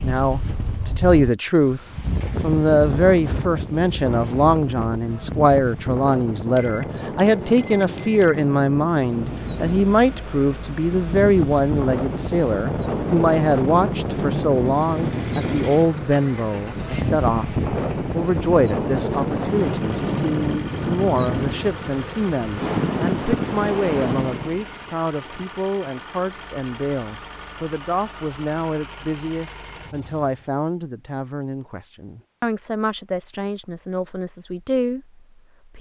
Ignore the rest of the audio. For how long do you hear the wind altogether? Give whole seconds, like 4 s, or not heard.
25 s.